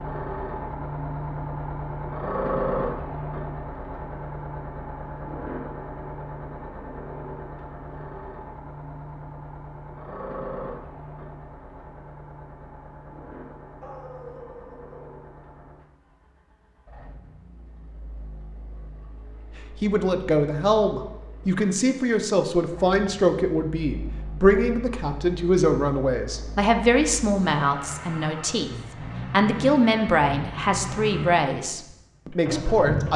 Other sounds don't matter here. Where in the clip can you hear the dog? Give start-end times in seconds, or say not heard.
13.8-15.2.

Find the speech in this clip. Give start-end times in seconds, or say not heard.
19.8-33.1.